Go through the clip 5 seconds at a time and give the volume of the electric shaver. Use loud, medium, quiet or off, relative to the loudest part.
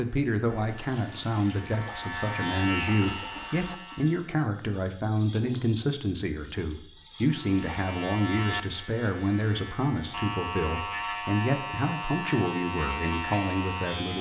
loud, medium, loud.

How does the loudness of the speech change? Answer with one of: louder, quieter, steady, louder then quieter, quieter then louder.
steady.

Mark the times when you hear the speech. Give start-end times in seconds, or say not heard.
0.0-14.1.